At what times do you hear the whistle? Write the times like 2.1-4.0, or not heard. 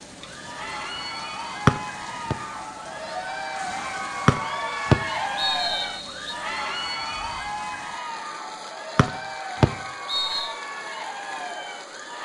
1.6-2.4, 4.2-6.3, 8.9-10.5.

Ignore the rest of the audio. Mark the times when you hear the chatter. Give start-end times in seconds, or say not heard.
0.1-12.2.